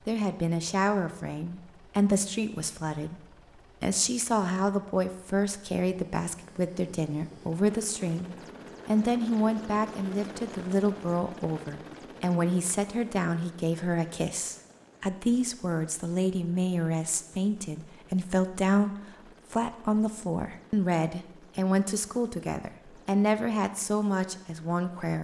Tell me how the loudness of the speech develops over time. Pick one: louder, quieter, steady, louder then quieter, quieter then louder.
steady.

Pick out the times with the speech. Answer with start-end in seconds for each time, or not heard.
0.1-3.2, 3.8-25.1.